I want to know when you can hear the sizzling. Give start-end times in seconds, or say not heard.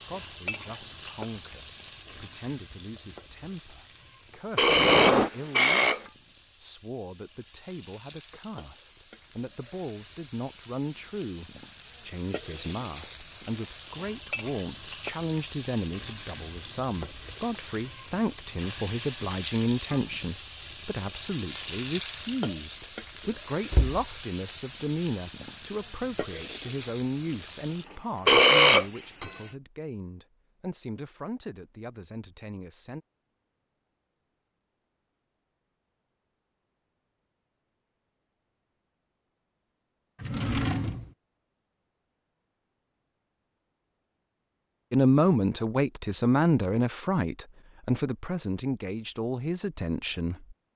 0.0-29.6.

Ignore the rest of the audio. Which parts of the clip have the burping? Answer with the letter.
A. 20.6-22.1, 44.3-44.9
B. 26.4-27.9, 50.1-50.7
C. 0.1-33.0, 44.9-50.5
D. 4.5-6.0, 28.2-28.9
D.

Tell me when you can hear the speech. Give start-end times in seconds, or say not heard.
0.1-33.0, 44.9-50.5.